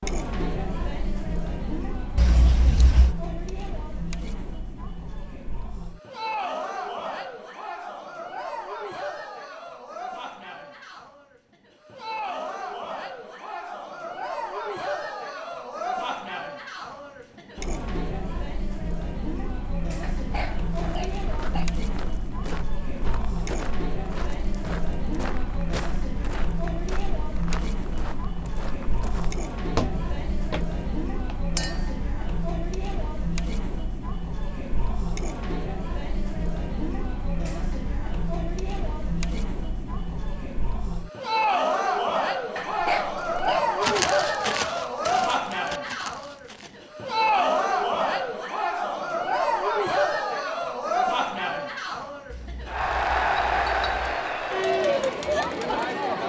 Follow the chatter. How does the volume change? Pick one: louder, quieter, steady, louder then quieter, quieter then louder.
louder.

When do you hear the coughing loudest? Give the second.
43 s.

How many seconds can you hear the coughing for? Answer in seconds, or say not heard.
3 s.